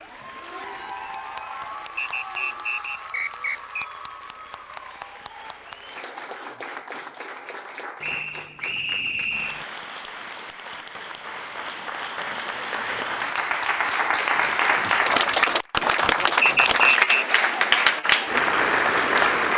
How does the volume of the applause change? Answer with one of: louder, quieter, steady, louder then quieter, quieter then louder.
louder.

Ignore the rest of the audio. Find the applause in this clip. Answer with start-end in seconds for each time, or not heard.
0.0-19.5.